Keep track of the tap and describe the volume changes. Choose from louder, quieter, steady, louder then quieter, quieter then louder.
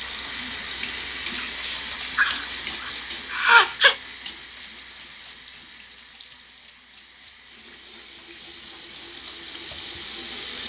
quieter then louder.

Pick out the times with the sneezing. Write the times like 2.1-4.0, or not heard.
1.4-4.0.